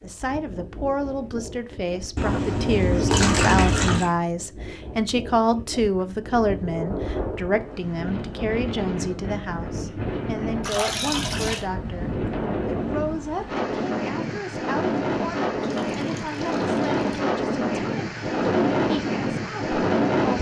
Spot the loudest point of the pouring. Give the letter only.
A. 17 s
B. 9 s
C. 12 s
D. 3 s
D.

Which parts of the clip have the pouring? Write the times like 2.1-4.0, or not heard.
2.1-4.1, 10.6-11.7, 15.6-17.2.